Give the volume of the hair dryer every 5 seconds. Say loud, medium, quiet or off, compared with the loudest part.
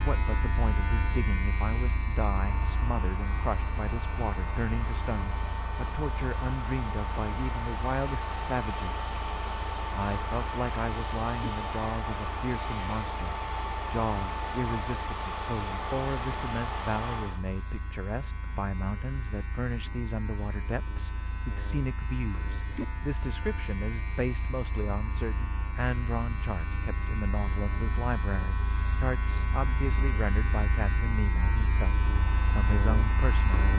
medium, loud, loud, loud, off, off, off.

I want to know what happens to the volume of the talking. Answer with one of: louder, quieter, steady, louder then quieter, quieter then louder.
steady.